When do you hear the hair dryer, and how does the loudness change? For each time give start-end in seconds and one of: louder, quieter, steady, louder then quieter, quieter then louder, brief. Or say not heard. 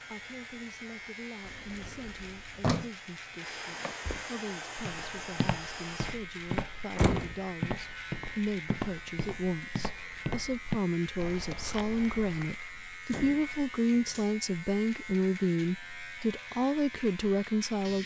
0.0-6.2 louder.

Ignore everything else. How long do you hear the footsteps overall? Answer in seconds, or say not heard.
9 s.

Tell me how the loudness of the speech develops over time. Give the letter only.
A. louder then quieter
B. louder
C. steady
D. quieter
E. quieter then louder
B.